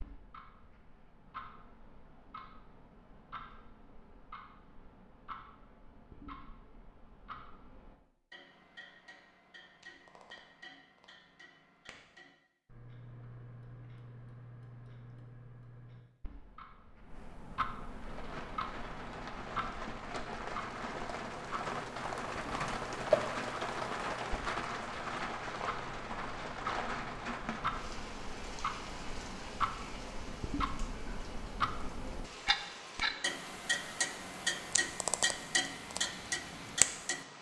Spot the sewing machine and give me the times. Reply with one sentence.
The sewing machine can't be heard in this clip.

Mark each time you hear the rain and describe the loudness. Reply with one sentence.
You can hear the rain from 17.8 to 37.3 s, getting louder then quieter.